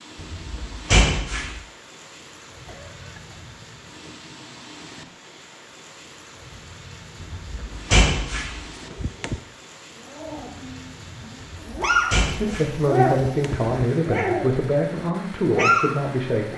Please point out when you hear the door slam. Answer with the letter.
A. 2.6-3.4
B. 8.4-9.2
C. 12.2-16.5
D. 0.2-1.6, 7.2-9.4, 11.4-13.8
D.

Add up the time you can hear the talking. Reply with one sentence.
You can hear the talking for 4 seconds altogether.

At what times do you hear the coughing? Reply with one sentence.
You can hear the coughing from 2.6 to 3.4 s.